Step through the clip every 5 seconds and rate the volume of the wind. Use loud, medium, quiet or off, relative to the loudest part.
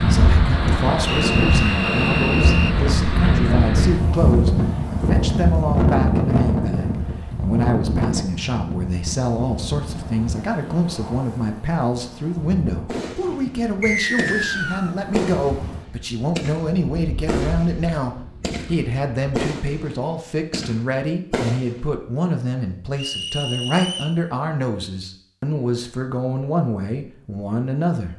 loud, loud, quiet, quiet, off, off.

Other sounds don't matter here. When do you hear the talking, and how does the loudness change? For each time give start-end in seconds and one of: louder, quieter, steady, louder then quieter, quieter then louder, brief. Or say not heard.
0.0-28.1 steady.